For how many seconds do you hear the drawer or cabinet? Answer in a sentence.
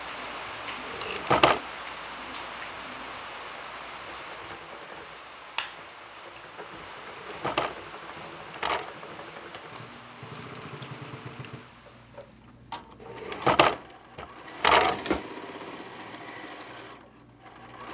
The drawer or cabinet can be heard for 5 seconds in total.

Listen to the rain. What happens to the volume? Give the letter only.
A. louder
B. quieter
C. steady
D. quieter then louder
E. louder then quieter
B.